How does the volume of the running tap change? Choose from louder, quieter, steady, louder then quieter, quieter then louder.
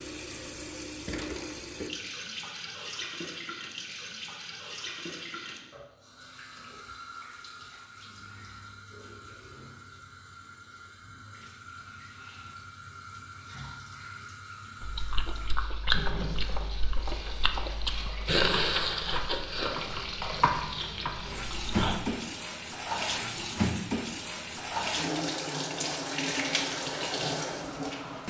quieter then louder.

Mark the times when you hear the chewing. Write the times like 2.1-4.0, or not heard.
14.8-22.0.